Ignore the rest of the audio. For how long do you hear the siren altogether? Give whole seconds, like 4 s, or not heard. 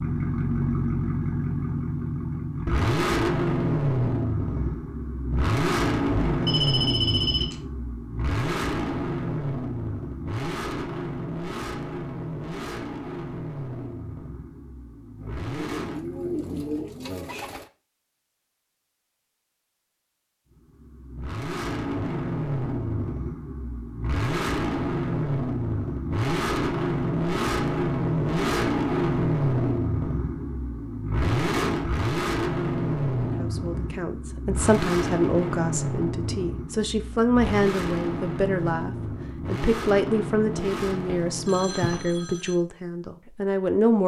not heard.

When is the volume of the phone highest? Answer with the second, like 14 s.
7 s.